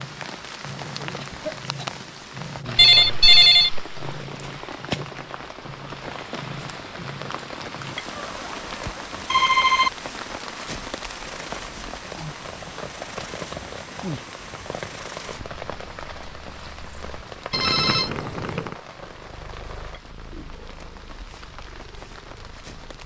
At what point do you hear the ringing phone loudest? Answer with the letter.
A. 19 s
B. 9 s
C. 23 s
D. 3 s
D.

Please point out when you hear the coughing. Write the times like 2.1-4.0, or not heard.
1.1-1.9.